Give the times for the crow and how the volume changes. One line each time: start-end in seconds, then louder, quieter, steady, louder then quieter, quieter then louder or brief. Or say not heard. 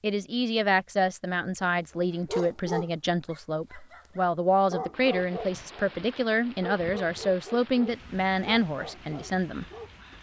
not heard.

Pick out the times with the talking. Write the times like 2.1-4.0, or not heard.
0.0-9.7.